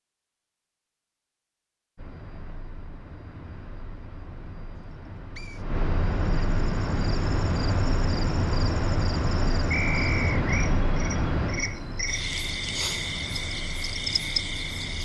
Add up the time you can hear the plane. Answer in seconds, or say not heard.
13 s.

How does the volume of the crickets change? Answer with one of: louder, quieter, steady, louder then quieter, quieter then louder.
louder.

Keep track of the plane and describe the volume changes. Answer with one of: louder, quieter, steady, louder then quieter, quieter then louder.
louder then quieter.